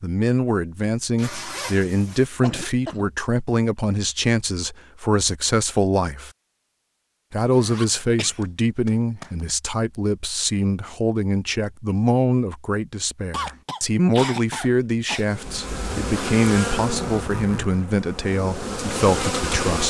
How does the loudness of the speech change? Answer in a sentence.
The loudness of the speech stays about the same.